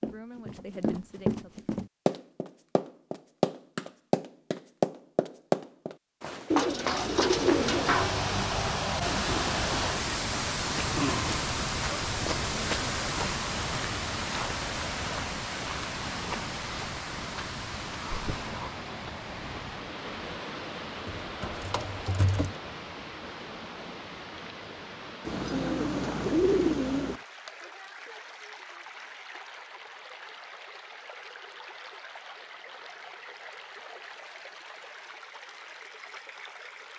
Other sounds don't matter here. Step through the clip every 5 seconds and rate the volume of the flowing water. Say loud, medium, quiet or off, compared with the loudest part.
off, loud, loud, medium, medium, quiet, quiet, quiet.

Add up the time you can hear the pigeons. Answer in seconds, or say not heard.
5 s.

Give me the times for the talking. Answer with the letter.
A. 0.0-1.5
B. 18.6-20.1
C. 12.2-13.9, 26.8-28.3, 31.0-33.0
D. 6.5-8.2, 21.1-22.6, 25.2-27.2
A.